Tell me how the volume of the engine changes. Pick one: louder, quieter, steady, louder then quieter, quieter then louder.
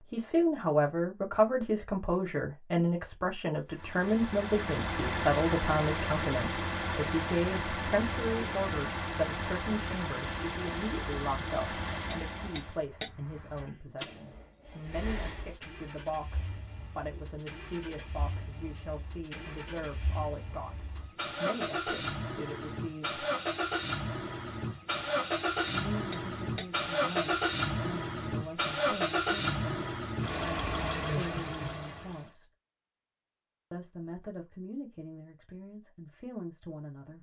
quieter then louder.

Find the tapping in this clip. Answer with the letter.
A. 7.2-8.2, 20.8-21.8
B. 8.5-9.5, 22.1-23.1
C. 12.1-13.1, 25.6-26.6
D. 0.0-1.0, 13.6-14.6
C.